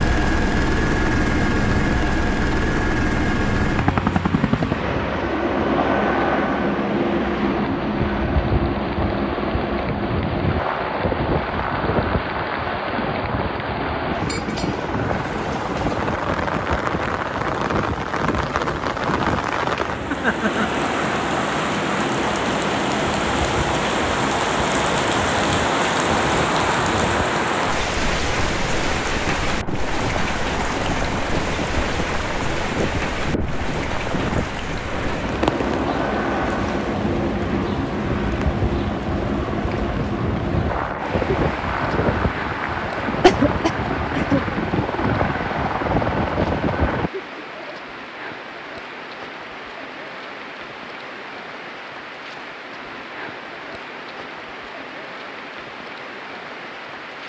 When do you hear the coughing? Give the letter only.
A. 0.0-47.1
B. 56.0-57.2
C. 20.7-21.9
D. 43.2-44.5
D.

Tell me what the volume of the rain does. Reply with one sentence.
The volume of the rain goes up, then down.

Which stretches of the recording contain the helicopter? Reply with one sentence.
The helicopter can be heard from 0.0 to 47.1 s.